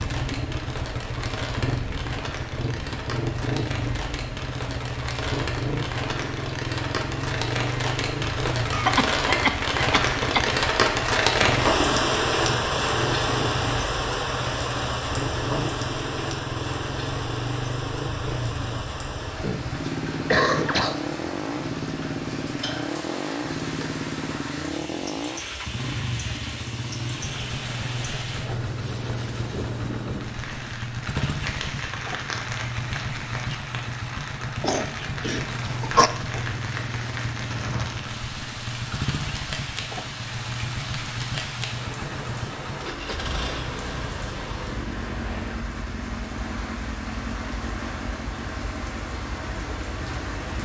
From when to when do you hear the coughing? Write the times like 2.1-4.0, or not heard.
8.7-10.6, 19.4-21.1, 34.6-36.1.